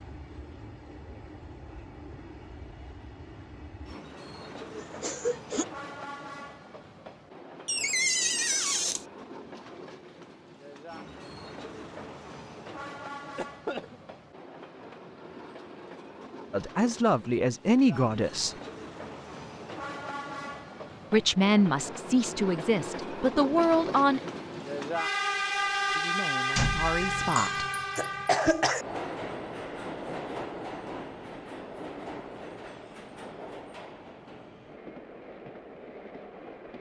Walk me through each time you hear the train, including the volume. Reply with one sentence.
You can hear the train from 0.0 to 36.7 s, getting louder then quieter.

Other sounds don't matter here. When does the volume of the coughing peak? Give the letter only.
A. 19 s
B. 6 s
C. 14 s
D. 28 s
D.